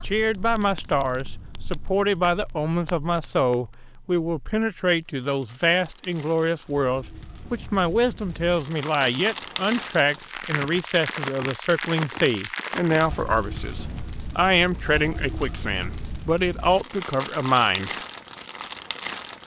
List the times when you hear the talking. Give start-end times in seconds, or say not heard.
0.0-17.9.